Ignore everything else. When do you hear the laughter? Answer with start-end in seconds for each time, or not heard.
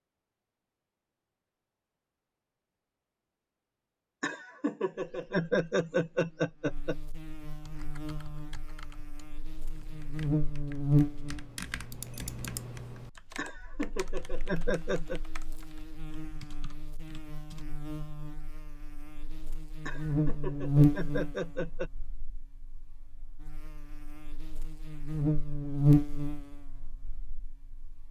4.2-7.0, 13.3-15.2, 19.9-21.9.